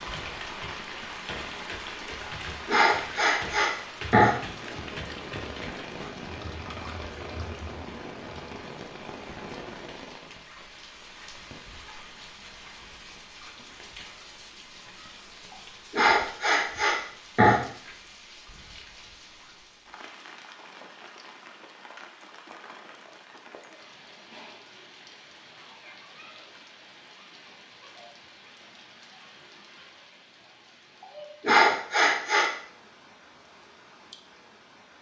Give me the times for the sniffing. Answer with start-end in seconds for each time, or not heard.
2.6-4.3, 15.9-17.6, 31.0-32.5.